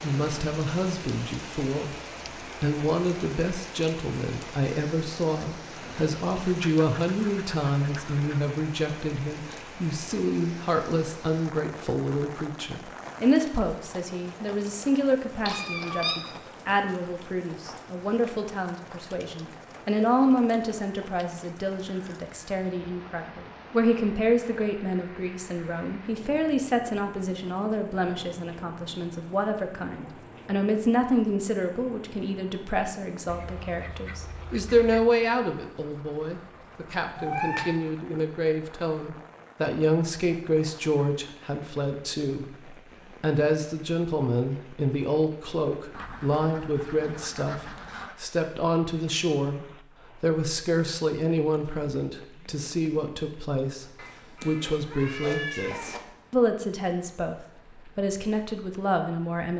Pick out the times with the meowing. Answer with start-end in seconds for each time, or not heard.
15.4-16.2, 37.1-37.8, 54.0-56.0.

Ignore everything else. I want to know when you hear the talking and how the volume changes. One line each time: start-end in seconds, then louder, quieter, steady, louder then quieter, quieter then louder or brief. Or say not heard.
0.0-1.9 brief
2.6-59.5 steady.